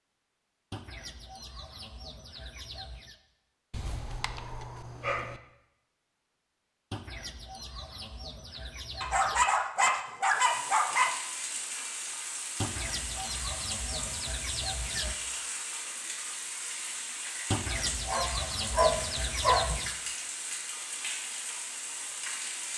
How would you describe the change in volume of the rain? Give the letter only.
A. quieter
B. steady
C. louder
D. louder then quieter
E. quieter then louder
B.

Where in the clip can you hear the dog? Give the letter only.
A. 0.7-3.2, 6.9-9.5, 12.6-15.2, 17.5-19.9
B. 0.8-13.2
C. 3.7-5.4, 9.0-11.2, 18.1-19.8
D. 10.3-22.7
C.